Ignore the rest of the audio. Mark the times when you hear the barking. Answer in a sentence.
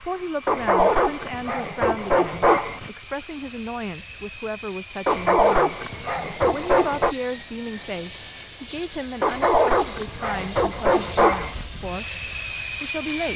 The barking can be heard from 0.5 to 2.9 s, from 5.0 to 7.2 s and from 9.2 to 11.7 s.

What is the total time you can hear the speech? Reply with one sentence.
You can hear the speech for 13 seconds altogether.